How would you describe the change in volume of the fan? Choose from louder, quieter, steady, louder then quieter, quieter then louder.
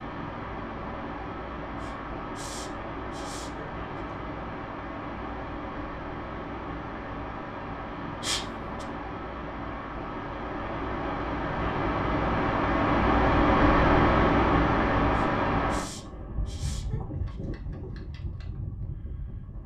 louder then quieter.